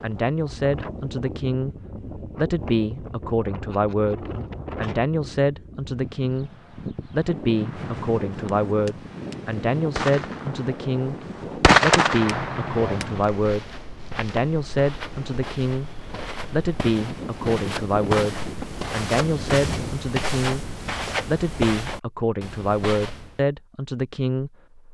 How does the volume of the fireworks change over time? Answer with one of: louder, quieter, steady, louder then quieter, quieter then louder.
louder then quieter.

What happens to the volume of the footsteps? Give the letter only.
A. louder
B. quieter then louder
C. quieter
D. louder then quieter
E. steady
A.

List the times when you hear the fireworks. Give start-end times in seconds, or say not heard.
7.5-13.3.